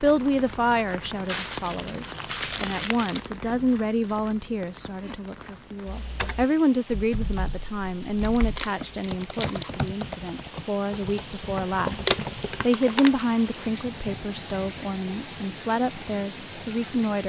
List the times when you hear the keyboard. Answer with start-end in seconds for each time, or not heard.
5.8-12.7.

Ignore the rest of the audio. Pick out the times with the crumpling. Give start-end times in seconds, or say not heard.
1.2-3.2, 8.2-9.7, 12.1-13.2.